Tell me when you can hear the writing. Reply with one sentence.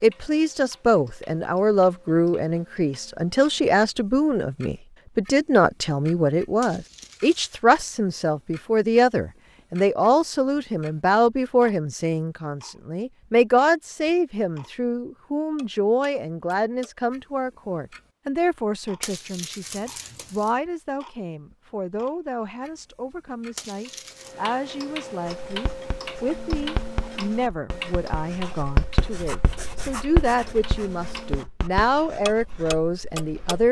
The writing can be heard from 25.2 to 33.6 s.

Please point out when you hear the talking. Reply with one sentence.
You can hear the talking from 0.0 to 33.6 s.